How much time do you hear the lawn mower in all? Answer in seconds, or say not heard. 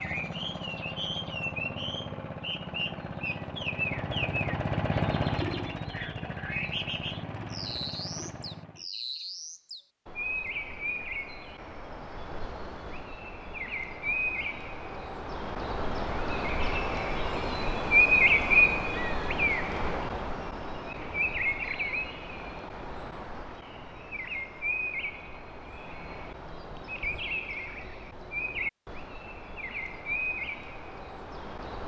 9 s.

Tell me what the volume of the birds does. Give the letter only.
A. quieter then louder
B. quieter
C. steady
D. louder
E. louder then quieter
E.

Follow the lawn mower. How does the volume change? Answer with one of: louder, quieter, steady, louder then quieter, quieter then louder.
louder then quieter.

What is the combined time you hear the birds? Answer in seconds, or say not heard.
32 s.